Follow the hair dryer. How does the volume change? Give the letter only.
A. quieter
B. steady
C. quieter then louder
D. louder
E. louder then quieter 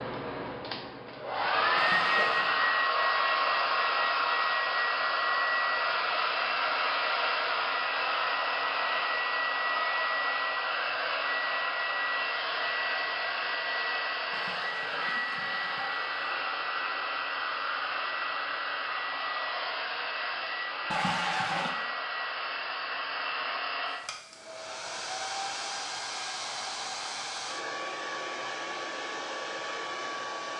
A.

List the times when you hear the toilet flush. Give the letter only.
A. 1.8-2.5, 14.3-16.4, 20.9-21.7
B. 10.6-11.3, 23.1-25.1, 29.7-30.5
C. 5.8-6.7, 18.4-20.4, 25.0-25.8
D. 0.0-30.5
A.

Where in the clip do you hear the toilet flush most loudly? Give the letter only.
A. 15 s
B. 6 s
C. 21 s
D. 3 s
C.